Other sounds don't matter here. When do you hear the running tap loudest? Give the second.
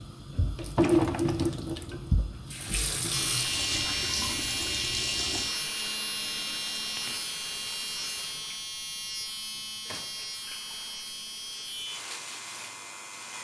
1 s.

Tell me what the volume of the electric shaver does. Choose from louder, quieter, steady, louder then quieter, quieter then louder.
quieter.